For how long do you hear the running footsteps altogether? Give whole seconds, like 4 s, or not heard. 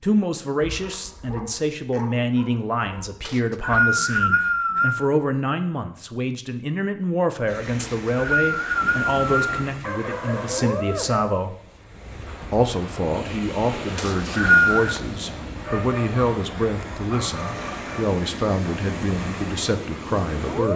not heard.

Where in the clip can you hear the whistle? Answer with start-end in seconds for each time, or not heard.
3.2-5.0, 7.8-9.7, 13.9-14.9.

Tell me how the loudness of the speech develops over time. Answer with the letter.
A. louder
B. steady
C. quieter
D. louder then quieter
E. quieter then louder
B.